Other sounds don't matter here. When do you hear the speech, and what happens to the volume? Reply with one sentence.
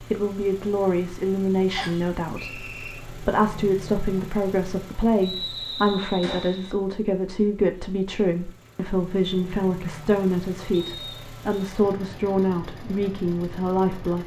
You can hear the speech from 0.0 to 14.2 s, at a steady volume.